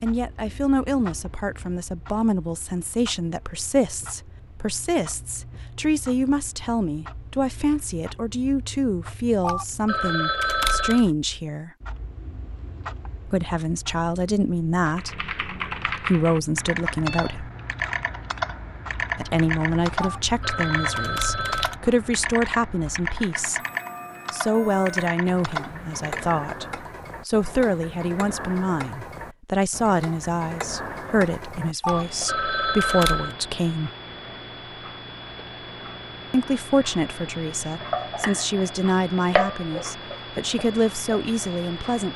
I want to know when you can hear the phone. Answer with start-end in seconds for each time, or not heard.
9.4-11.1, 19.9-21.8, 31.8-33.4.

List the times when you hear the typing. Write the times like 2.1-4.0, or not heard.
14.9-26.4.